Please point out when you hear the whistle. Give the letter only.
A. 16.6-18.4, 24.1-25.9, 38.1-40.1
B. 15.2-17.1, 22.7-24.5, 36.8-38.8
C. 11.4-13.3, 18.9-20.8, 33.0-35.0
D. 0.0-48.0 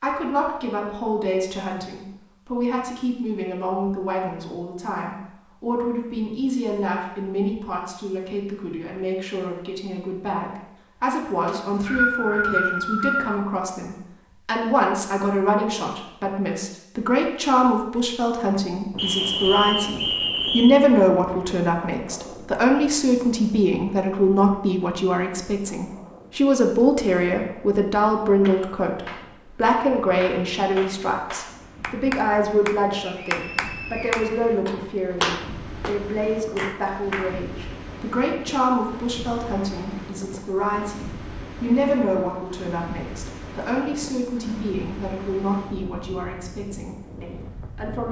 C.